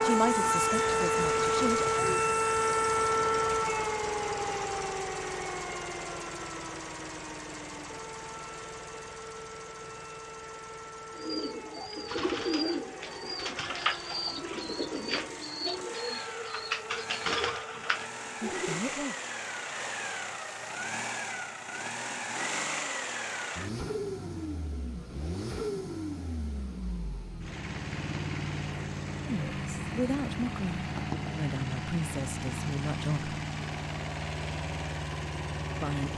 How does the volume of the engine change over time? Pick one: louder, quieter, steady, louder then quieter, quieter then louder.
quieter then louder.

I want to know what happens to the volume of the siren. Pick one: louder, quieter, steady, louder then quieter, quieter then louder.
quieter.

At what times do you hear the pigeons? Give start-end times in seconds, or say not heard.
11.2-18.8.